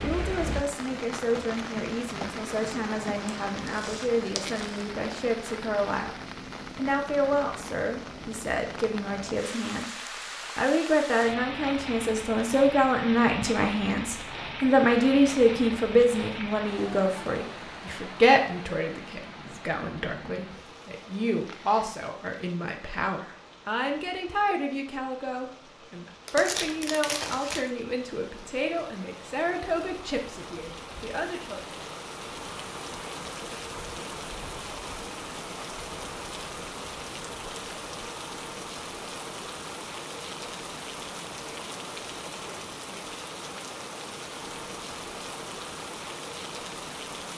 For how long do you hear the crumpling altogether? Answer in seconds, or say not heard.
3 s.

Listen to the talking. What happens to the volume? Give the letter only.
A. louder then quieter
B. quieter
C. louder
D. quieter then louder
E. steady
A.